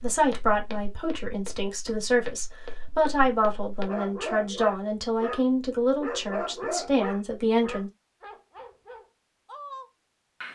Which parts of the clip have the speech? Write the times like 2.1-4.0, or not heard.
0.0-7.9.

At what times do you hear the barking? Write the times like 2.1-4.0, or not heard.
3.8-10.5.